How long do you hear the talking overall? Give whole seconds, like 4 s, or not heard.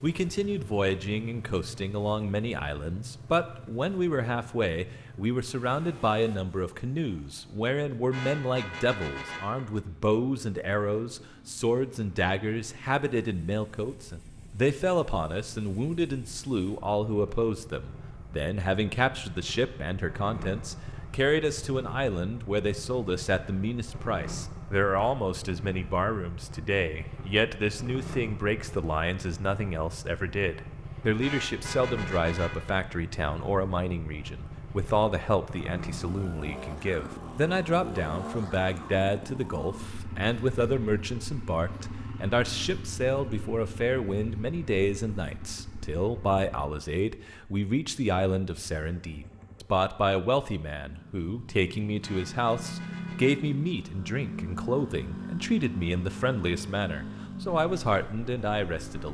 59 s.